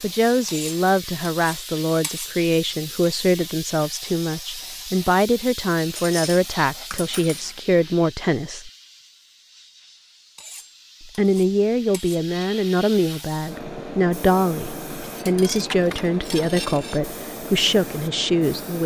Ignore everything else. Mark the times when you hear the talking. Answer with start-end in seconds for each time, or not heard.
0.0-8.7, 11.0-18.8.